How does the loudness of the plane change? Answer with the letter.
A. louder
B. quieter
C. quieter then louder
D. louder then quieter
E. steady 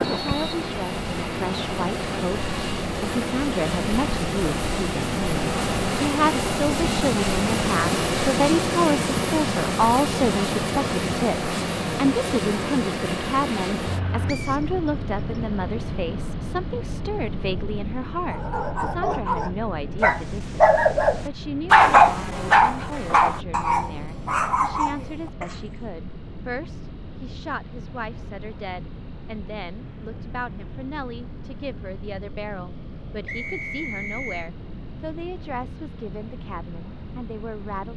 B.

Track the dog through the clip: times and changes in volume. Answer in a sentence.
The dog can be heard from 18.2 to 25.6 s, getting louder then quieter.